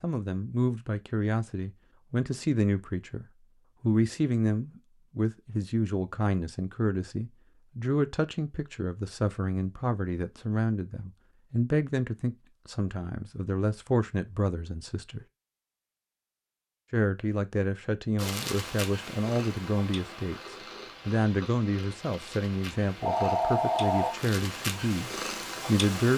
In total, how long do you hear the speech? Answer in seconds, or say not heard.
24 s.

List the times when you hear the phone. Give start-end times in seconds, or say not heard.
23.0-24.1.